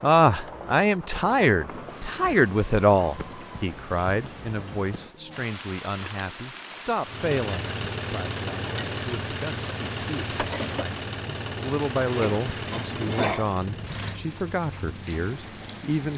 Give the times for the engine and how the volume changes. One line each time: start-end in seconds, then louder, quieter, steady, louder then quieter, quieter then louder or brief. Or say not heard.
7.0-15.9 quieter.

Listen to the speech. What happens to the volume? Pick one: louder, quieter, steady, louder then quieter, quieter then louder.
quieter.